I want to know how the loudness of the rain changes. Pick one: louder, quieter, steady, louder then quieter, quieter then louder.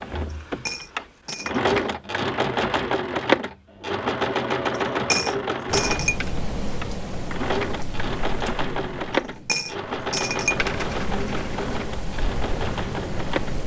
quieter then louder.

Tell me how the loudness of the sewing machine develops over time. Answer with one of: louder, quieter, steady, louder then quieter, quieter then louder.
quieter.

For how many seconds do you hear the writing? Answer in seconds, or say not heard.
not heard.